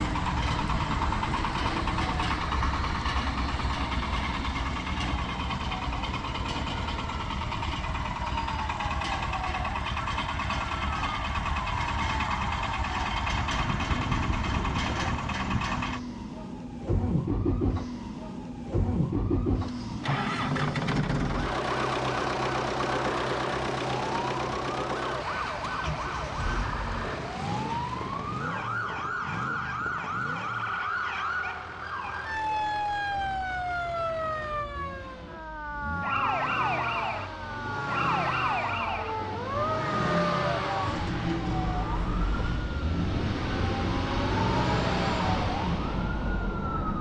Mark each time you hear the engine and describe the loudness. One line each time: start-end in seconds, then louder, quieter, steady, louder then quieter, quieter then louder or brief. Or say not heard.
0.0-46.9 quieter then louder.